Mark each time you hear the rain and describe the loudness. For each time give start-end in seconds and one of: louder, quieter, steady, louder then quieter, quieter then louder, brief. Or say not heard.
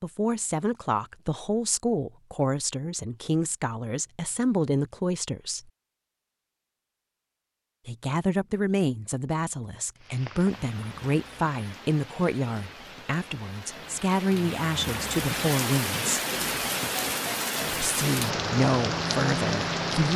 9.9-20.1 louder.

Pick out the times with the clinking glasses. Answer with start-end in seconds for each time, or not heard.
not heard.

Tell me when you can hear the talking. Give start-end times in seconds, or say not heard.
0.0-5.6, 7.8-16.2, 17.7-20.1.